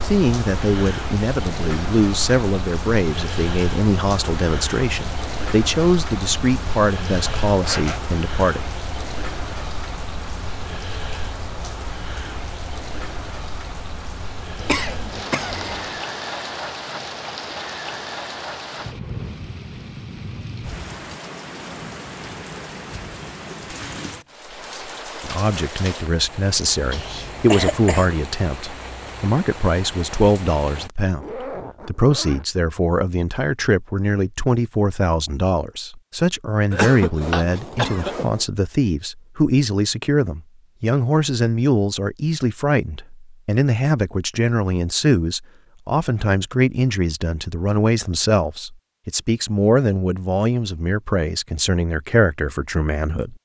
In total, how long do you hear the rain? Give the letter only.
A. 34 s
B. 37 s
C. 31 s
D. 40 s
C.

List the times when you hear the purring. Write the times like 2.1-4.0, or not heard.
not heard.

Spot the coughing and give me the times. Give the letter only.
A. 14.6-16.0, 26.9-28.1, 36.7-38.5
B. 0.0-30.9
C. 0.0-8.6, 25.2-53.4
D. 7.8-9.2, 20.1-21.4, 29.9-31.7
A.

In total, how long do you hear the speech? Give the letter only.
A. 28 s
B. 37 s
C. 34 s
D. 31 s
B.